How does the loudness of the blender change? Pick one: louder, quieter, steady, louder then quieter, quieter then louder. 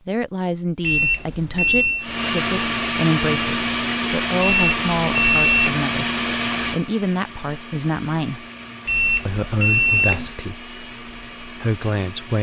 quieter.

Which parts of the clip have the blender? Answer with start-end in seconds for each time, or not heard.
1.9-12.3.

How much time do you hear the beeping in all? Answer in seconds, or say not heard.
4 s.